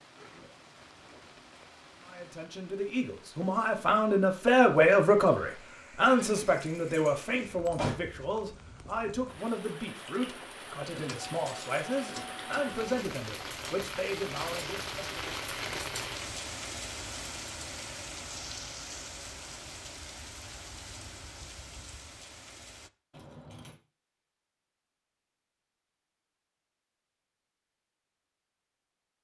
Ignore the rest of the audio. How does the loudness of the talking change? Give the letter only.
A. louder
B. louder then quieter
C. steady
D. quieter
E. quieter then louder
D.